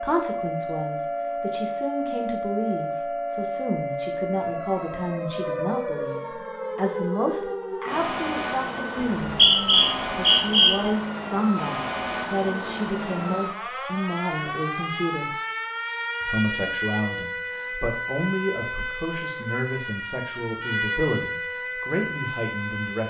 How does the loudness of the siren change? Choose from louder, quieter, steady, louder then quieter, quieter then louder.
steady.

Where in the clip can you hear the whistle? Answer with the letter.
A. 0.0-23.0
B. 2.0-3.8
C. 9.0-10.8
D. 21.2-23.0
C.